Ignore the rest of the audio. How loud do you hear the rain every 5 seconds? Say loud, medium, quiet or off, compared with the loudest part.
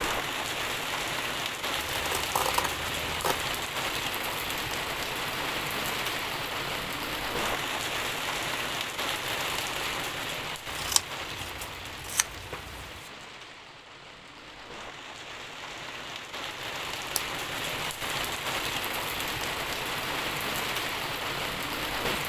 loud, loud, medium, loud, loud.